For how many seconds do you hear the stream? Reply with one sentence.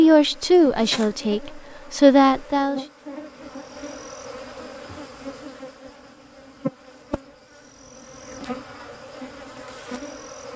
You can't hear the stream here.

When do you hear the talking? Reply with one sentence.
You can hear the talking from 0.0 to 2.8 s.